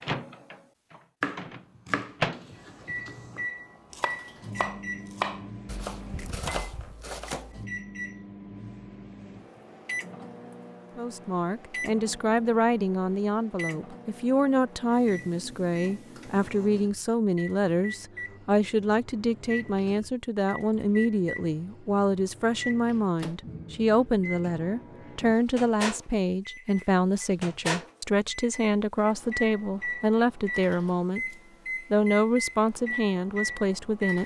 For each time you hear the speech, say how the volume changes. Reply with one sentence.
The speech can be heard from 10.9 to 34.2 s, at a steady volume.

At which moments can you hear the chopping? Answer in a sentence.
The chopping can be heard from 1.2 to 7.7 s.